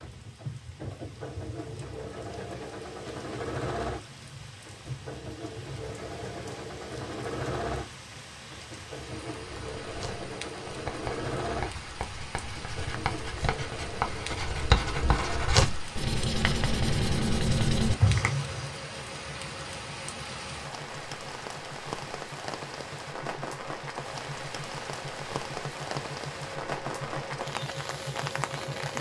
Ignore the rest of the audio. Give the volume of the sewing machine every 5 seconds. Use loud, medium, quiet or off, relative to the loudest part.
loud, loud, loud, loud, medium, loud.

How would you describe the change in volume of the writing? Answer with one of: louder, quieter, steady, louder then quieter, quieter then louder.
louder.